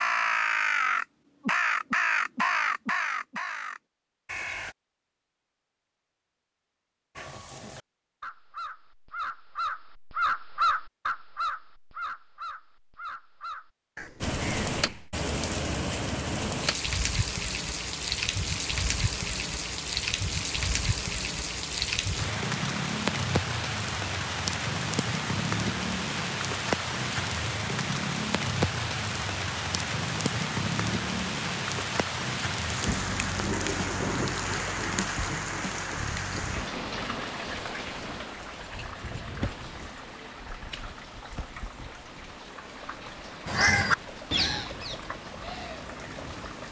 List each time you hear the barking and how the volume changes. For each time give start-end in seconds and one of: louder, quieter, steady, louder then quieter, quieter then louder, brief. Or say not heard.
not heard.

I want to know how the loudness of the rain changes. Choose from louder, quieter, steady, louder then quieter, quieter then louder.
quieter.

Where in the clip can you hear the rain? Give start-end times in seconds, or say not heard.
14.2-46.6.